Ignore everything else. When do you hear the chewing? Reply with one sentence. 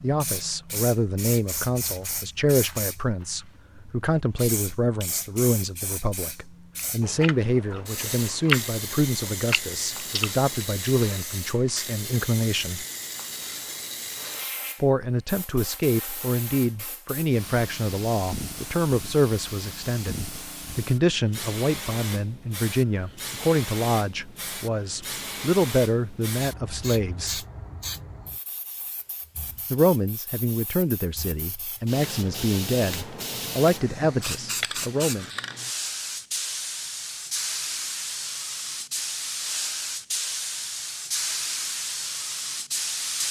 The chewing can be heard from 7.0 to 10.9 s.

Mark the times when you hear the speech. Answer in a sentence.
The speech can be heard from 0.0 to 12.8 s, from 14.8 to 27.4 s and from 29.7 to 35.2 s.